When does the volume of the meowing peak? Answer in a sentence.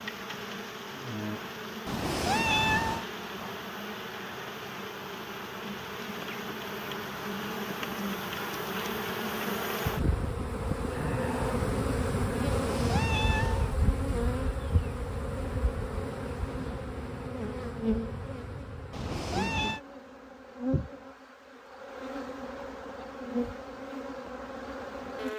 The loudest moment of the meowing is at 3 seconds.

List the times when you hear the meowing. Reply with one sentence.
You can hear the meowing from 1.9 to 3.0 s, from 12.5 to 13.8 s and from 18.9 to 19.8 s.